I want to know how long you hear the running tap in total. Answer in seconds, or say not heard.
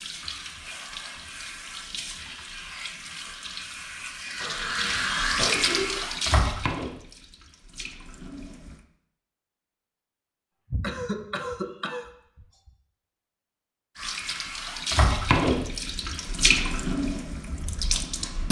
13 s.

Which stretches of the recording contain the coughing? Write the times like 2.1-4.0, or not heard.
4.4-6.0, 10.7-12.7.